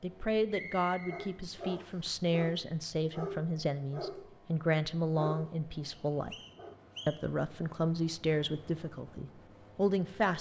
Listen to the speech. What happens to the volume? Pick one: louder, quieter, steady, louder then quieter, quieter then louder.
steady.